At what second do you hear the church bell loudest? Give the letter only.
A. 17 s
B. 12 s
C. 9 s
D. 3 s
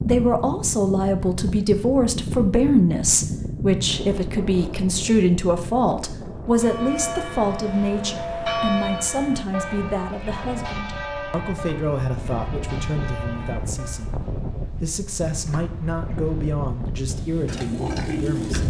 C.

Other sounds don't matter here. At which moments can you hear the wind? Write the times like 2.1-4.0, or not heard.
0.0-18.6.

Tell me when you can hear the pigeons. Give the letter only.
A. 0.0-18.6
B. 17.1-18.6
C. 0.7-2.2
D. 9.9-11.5
B.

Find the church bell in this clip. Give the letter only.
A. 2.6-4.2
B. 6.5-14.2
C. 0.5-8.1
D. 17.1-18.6
B.